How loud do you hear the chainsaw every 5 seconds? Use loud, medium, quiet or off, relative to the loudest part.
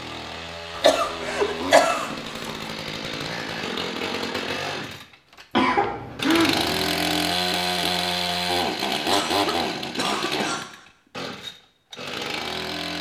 medium, loud, medium.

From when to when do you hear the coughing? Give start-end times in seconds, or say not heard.
0.8-2.5, 5.5-6.8, 9.1-10.7.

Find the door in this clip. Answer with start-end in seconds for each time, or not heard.
not heard.